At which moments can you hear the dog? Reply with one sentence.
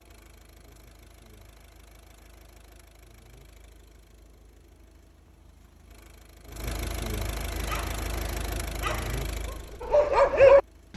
You can hear the dog from 7.5 to 10.9 s.